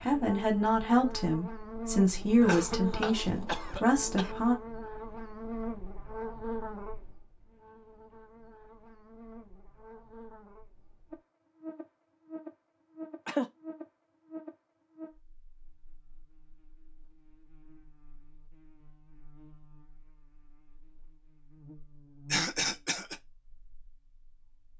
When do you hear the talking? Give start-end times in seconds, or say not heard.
0.0-4.5.